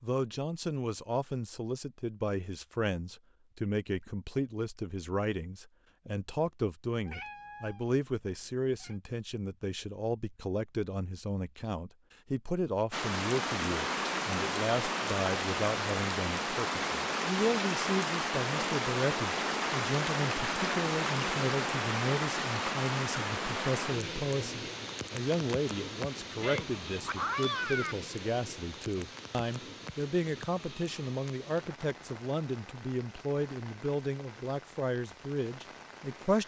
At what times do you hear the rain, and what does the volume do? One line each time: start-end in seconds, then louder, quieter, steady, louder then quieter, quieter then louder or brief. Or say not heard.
12.9-36.4 quieter.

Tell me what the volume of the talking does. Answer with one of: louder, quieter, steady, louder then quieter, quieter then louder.
steady.